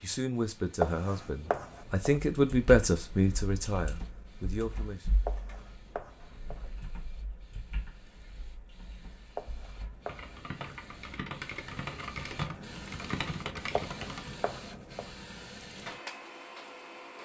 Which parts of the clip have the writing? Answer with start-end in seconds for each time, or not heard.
0.8-2.2, 5.2-6.7, 9.3-10.8, 13.8-15.1.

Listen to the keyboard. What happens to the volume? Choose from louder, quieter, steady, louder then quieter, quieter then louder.
quieter then louder.